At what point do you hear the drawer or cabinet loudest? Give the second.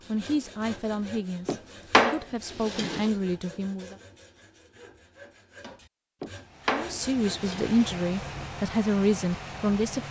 2 s.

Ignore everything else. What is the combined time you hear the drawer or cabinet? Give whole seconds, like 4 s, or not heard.
3 s.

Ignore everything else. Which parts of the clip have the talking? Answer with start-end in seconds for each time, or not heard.
0.1-4.0, 6.7-10.0.